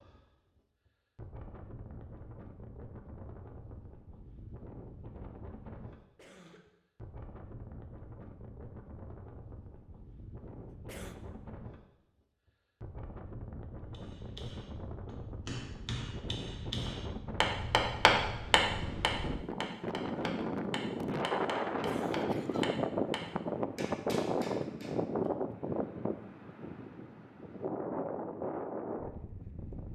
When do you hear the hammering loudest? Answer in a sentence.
The volume of the hammering peaks at 18 seconds.